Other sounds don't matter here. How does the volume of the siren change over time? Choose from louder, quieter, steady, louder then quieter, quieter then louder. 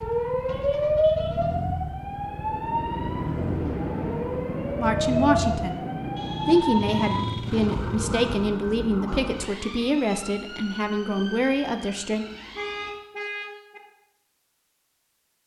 quieter.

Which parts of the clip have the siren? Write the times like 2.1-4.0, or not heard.
0.0-12.9.